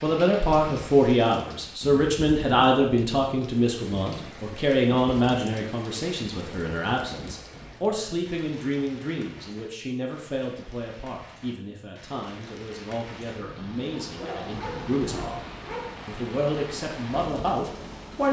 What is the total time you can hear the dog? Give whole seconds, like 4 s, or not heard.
2 s.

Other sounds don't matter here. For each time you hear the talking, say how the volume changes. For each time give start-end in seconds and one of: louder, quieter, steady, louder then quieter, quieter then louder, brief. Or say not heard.
0.0-15.4 quieter
16.1-18.2 brief.